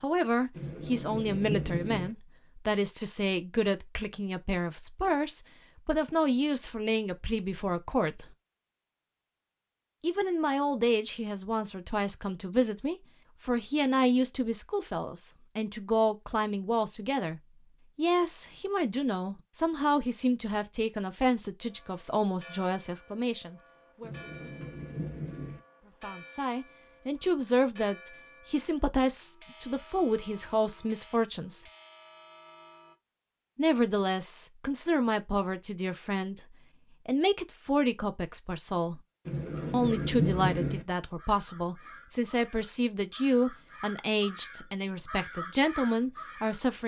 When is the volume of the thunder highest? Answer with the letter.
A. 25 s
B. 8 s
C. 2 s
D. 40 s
D.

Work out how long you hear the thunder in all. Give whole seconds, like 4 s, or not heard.
5 s.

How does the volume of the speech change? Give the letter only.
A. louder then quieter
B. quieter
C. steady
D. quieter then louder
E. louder
C.